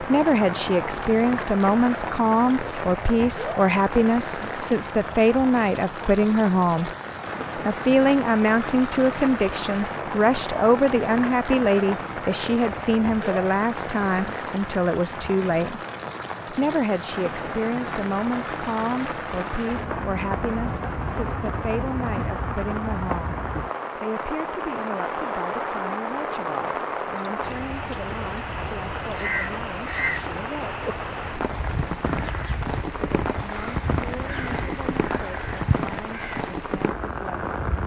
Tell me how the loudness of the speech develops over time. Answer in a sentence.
The loudness of the speech goes down.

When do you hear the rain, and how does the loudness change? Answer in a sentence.
The rain can be heard from 0.0 to 37.8 s, at a steady volume.